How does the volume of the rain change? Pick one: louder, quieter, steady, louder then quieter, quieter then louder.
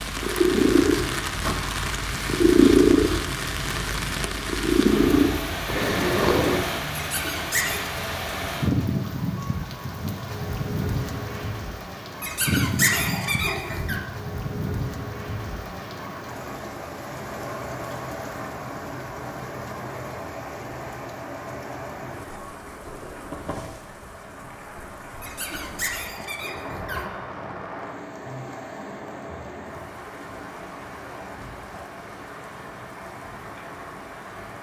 quieter.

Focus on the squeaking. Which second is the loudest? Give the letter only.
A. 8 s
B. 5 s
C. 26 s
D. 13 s
D.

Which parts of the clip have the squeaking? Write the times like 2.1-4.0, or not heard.
7.0-7.8, 12.2-14.0, 25.2-27.1.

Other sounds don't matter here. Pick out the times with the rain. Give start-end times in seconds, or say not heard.
0.0-34.5.